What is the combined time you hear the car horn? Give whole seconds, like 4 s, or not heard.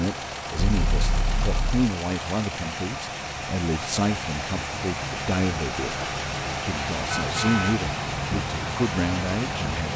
2 s.